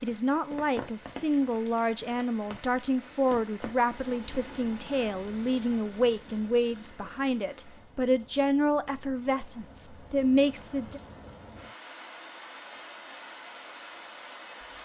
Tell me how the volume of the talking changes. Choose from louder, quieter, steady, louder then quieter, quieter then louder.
steady.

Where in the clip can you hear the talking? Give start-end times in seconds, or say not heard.
0.0-11.0.